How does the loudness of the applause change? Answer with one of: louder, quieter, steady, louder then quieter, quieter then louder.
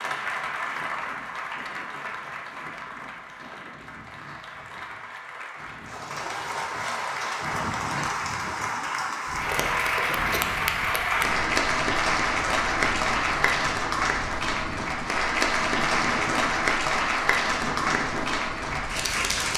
louder.